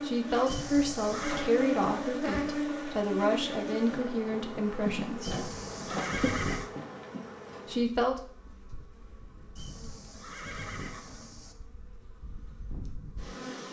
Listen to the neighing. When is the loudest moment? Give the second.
6 s.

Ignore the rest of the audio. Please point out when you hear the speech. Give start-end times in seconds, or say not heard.
0.0-5.5, 7.7-8.2.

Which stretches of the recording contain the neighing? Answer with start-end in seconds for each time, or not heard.
0.5-1.6, 5.2-6.7, 9.6-11.6.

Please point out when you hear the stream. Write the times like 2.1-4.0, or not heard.
not heard.